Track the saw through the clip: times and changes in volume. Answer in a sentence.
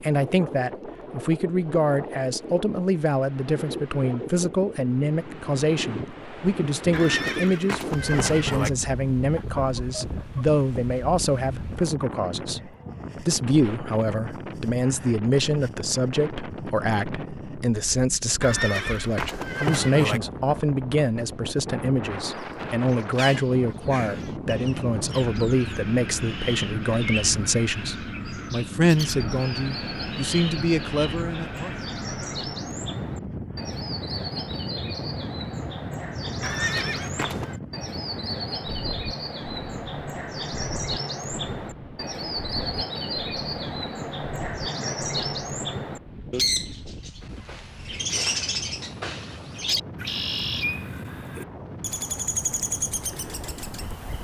The saw can't be heard in this clip.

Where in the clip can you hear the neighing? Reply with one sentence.
The neighing can be heard from 6.9 to 8.7 s, from 18.4 to 20.2 s and from 36.4 to 37.5 s.